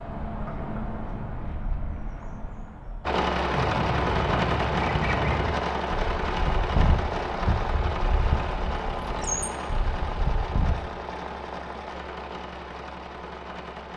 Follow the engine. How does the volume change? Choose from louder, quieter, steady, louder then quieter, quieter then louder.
quieter.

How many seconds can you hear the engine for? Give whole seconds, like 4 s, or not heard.
11 s.